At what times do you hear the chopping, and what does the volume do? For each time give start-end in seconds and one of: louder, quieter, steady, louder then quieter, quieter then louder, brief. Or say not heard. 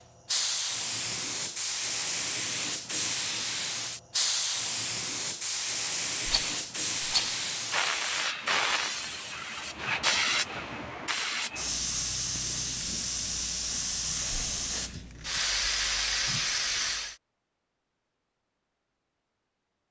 not heard.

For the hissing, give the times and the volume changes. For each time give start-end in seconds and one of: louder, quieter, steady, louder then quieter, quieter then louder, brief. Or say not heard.
0.2-17.1 steady.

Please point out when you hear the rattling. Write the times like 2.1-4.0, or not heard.
6.2-7.5.